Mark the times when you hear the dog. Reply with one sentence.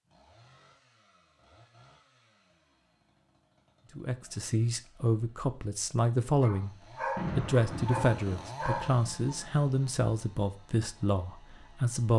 The dog can be heard from 6.4 to 9.3 s.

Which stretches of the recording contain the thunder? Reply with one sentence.
The thunder can be heard from 7.2 to 9.0 s.